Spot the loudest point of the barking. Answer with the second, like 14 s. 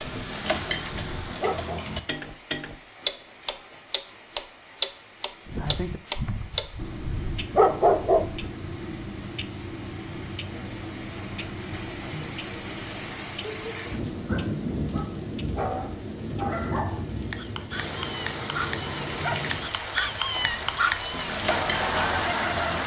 8 s.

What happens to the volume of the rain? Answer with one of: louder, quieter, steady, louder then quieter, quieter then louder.
louder.